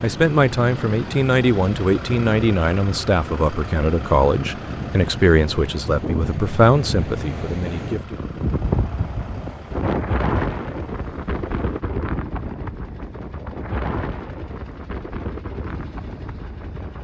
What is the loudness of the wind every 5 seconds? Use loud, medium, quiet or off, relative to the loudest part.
medium, loud, loud, medium.